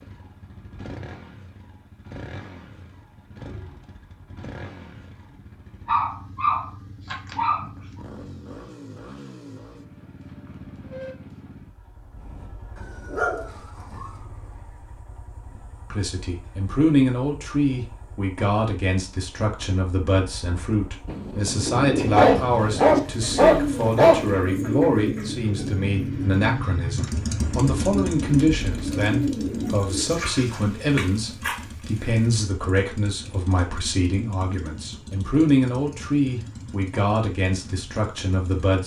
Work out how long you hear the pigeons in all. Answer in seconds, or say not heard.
9 s.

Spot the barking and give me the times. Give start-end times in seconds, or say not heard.
5.8-7.7, 13.1-14.1, 22.0-24.3, 30.1-31.6.